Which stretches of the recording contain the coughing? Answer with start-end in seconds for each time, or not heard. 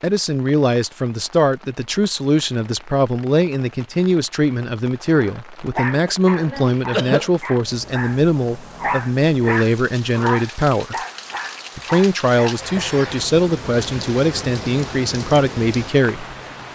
5.9-7.3.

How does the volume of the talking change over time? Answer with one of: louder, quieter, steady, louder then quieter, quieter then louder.
steady.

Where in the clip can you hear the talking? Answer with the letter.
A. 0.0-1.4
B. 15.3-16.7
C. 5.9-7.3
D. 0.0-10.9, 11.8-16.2
D.